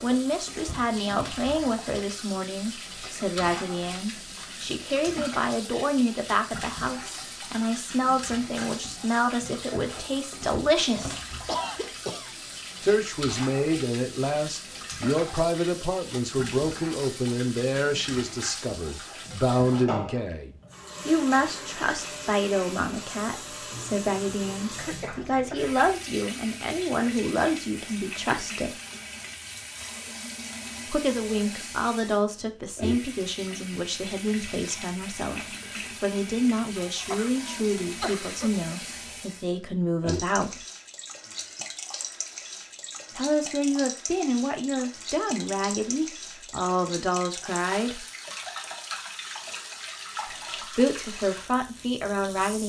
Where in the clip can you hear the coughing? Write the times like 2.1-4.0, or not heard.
11.4-12.3, 24.8-26.0, 36.8-38.6.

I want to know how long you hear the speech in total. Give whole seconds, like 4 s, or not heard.
44 s.